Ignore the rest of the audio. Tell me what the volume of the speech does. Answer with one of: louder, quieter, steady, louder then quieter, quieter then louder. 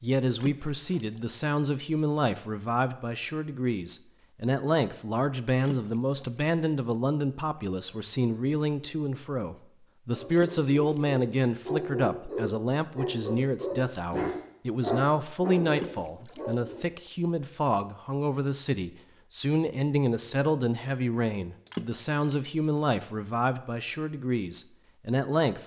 steady.